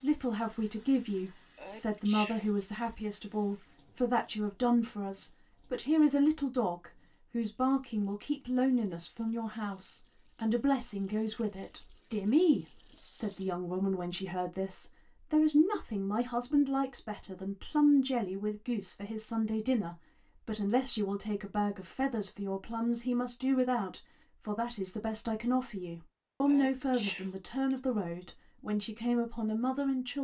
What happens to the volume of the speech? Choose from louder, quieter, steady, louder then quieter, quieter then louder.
steady.